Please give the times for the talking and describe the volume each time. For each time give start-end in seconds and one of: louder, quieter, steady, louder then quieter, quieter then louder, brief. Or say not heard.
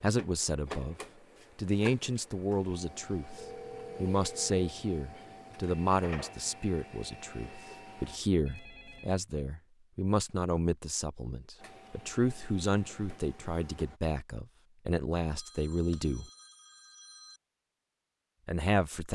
0.0-0.9 brief
1.6-16.3 steady
18.4-19.0 brief.